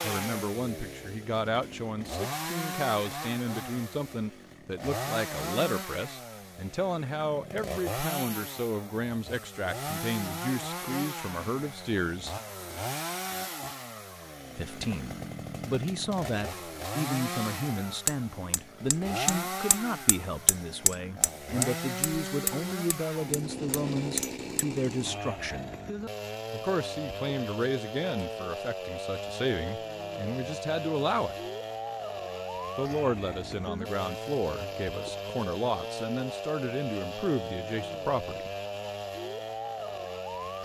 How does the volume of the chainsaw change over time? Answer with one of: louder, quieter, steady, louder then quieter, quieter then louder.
steady.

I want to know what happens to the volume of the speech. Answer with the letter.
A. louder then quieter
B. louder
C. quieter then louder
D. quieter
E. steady
E.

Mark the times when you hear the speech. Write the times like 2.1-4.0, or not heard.
0.0-12.3, 14.6-25.8, 26.5-31.4, 32.8-38.5.